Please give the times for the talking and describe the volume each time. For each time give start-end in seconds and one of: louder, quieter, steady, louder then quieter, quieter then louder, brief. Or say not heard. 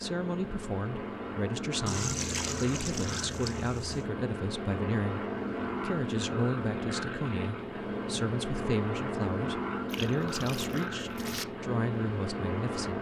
0.0-5.2 steady
5.8-12.9 steady.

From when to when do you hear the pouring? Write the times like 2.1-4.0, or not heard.
1.9-4.0, 9.8-11.4.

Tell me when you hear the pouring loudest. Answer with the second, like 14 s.
2 s.